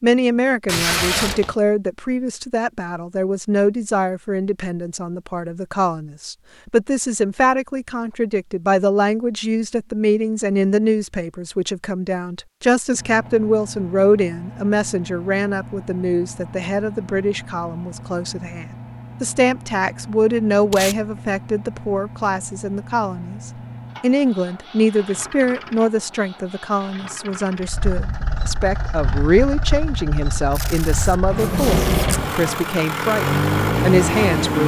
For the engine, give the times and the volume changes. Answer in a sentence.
You can hear the engine from 12.9 to 34.6 s, getting louder.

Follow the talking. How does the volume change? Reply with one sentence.
The volume of the talking stays about the same.